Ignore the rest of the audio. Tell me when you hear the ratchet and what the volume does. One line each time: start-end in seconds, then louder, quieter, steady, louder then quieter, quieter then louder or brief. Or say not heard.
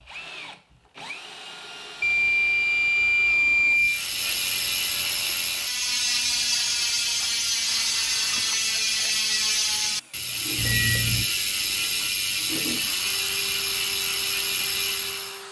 3.7-15.4 steady.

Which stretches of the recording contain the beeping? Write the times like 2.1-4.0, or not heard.
2.0-4.0, 10.6-11.2.